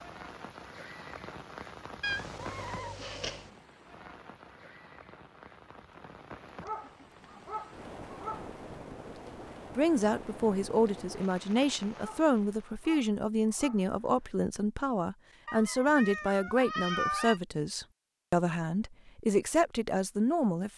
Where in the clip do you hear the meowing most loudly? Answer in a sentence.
The loudest moment of the meowing is at 17 seconds.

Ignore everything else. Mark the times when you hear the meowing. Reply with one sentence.
You can hear the meowing from 2.0 to 3.5 s and from 15.4 to 17.4 s.